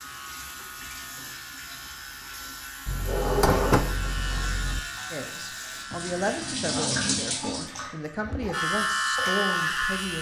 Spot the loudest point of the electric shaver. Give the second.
9 s.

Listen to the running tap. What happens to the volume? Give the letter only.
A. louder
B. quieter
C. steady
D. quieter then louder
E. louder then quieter
E.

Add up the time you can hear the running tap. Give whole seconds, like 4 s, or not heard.
10 s.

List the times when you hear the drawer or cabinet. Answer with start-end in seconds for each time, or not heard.
2.9-4.8.